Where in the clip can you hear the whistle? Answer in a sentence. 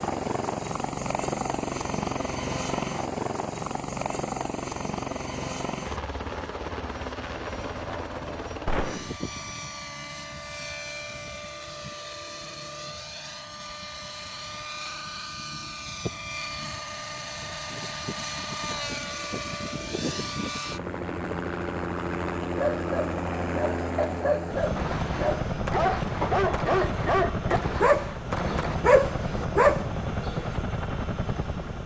You can't hear the whistle here.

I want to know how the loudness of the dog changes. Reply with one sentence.
The volume of the dog goes up.